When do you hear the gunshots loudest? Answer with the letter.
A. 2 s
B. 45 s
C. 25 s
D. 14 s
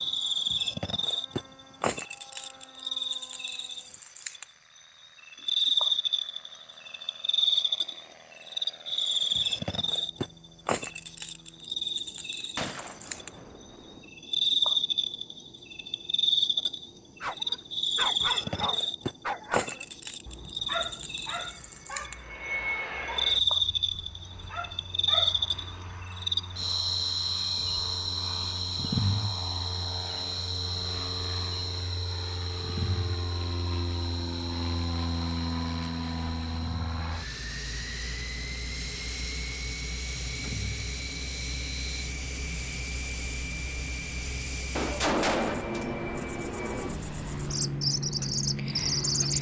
B.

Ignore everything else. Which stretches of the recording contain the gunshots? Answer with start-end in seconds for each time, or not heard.
12.6-14.1, 44.8-46.0.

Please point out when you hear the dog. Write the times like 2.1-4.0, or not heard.
17.2-26.1.